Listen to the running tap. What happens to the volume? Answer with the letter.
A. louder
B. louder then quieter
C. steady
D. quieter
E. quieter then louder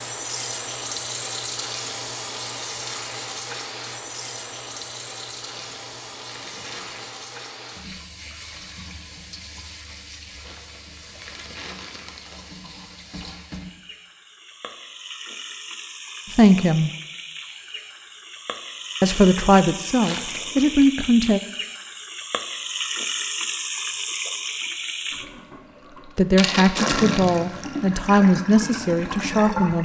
E.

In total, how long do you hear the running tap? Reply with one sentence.
You can hear the running tap for 30 seconds altogether.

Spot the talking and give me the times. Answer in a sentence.
The talking can be heard from 16.3 to 16.9 s, from 19.0 to 21.4 s and from 26.1 to 29.8 s.